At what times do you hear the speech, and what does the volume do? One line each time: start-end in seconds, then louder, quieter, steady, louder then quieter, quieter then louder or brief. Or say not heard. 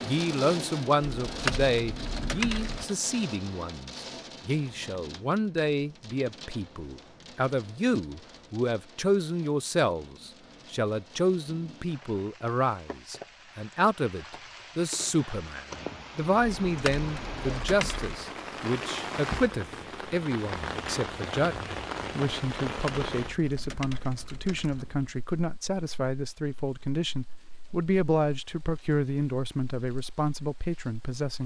0.0-31.4 steady.